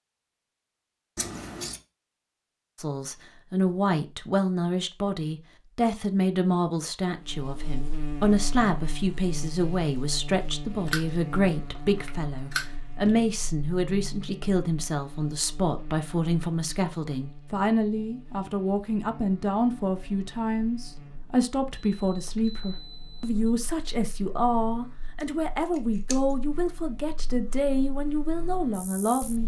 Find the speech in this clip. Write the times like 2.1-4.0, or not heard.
2.8-29.4.